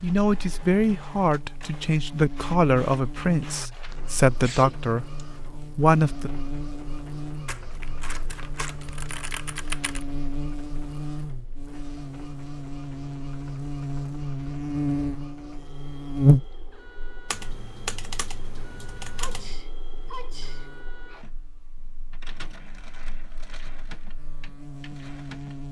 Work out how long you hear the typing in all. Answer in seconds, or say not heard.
5 s.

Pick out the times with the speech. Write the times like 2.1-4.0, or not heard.
0.0-6.3.